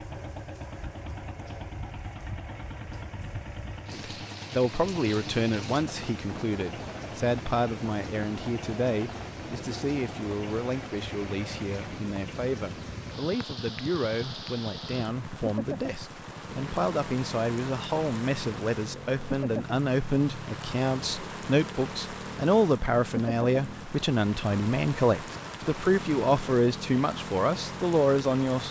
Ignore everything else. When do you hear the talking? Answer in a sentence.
You can hear the talking from 3.9 to 28.6 s.